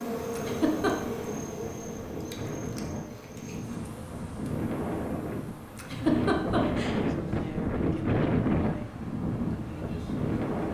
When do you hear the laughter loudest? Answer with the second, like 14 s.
6 s.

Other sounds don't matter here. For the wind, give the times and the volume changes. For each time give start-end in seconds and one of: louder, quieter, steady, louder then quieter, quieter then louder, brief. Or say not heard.
0.0-10.6 louder.